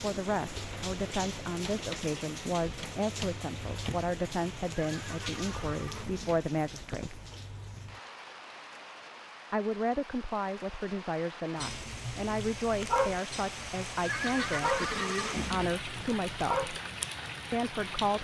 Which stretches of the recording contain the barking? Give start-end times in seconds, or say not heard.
11.6-16.8.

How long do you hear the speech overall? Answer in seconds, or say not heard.
15 s.